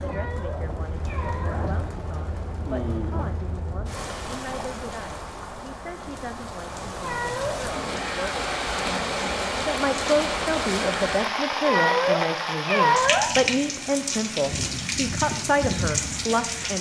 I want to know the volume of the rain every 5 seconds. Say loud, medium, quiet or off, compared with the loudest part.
medium, loud, loud, loud.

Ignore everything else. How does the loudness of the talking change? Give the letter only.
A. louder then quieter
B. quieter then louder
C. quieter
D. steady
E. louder
E.